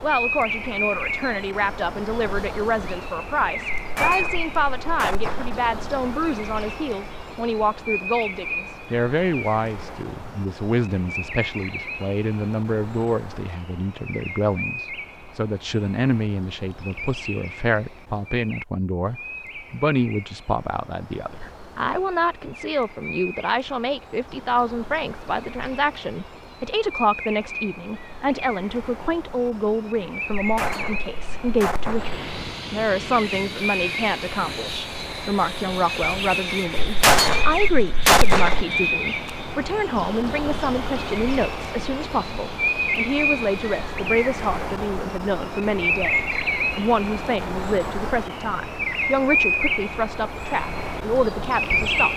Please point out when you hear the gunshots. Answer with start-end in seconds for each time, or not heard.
3.8-5.5, 30.4-32.2, 36.8-38.6.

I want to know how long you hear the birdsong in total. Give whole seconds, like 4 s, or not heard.
52 s.